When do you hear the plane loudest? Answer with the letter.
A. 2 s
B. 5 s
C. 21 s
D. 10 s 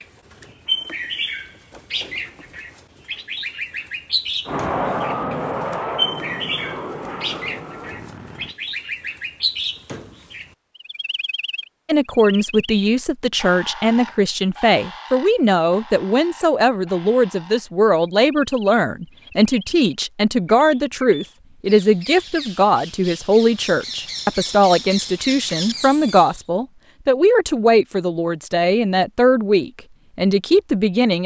B.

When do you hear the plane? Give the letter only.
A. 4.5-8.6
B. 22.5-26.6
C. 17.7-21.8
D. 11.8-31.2
A.